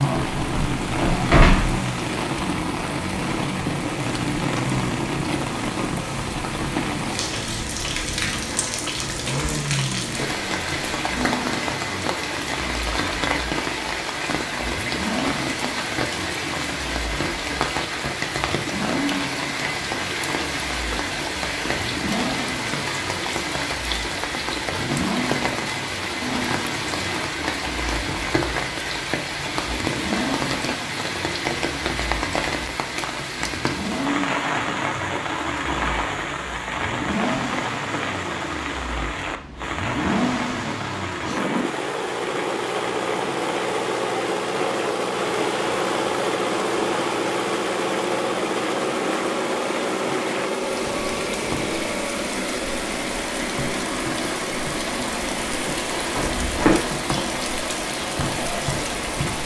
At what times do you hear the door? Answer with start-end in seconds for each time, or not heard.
0.1-1.8, 56.1-56.9.